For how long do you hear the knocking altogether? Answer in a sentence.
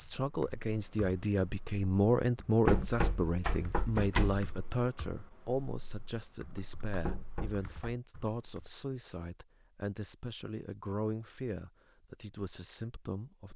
You can hear the knocking for 3 seconds altogether.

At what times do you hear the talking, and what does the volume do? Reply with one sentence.
The talking can be heard from 0.0 to 13.5 s, getting quieter.